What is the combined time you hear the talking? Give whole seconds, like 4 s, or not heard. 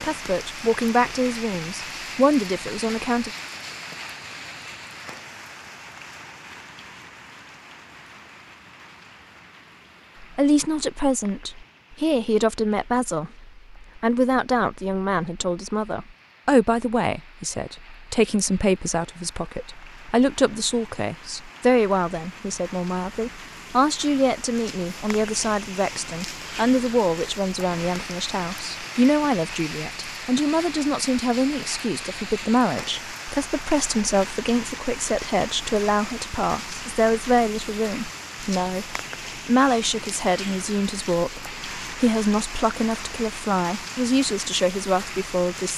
39 s.